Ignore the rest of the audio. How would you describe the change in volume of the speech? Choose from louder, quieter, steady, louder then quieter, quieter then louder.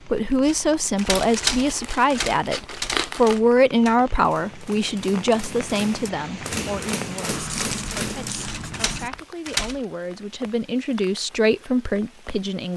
quieter then louder.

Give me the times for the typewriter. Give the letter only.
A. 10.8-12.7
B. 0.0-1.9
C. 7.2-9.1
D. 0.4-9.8
D.